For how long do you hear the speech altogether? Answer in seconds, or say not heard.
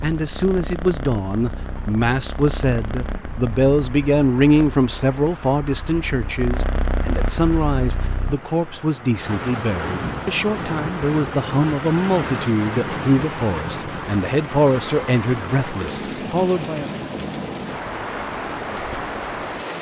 17 s.